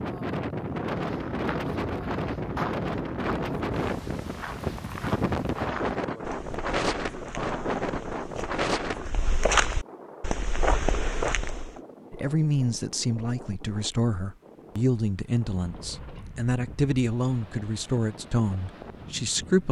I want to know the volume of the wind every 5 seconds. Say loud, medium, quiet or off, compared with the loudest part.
loud, loud, quiet, quiet.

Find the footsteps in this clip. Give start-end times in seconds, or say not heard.
0.6-11.8.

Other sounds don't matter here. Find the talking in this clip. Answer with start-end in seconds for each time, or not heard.
12.1-19.6.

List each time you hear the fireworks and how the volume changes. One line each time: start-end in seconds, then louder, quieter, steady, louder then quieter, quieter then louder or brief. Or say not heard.
not heard.